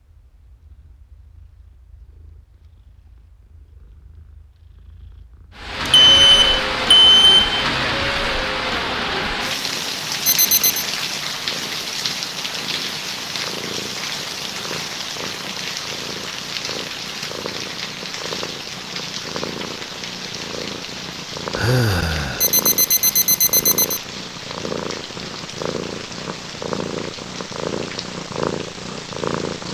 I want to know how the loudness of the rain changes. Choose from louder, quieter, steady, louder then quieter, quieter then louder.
quieter.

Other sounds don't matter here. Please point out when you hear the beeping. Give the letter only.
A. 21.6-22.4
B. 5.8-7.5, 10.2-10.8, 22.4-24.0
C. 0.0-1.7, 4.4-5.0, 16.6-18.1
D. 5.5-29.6
B.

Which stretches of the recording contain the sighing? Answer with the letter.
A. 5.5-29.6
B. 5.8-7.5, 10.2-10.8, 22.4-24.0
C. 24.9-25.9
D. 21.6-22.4
D.